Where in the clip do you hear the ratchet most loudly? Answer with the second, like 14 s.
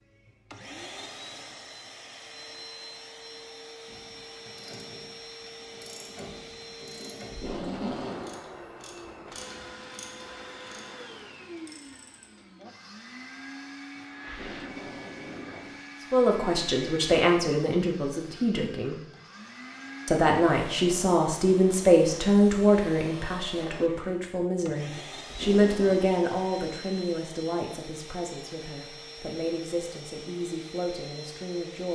8 s.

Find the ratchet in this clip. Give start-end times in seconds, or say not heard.
3.9-12.4.